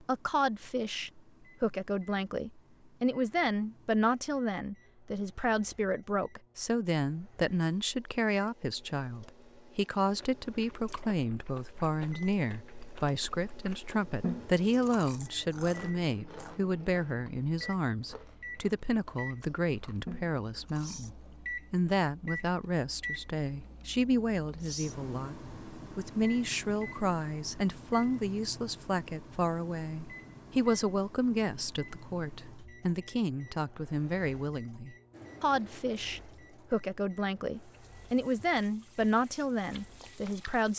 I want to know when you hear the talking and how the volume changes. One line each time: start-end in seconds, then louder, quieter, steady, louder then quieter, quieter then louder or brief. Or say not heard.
0.1-40.7 steady.